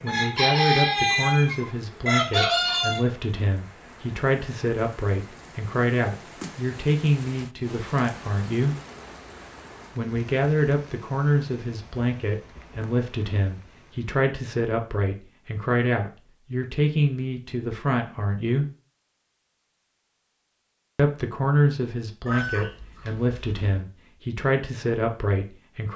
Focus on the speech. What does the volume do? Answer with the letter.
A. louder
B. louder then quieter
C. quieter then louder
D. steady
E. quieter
D.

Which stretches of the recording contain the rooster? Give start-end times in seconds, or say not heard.
0.1-3.0, 22.2-23.9.